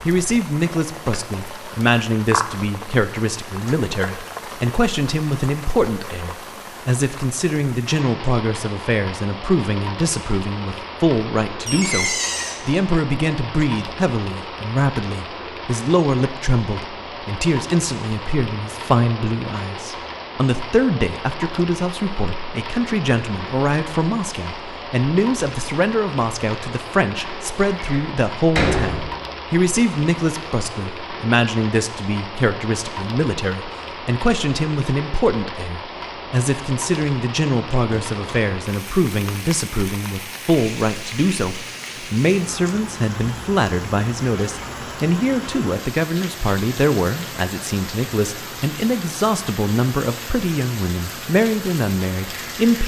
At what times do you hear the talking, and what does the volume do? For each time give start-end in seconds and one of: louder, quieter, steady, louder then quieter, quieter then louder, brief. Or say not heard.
0.1-52.8 steady.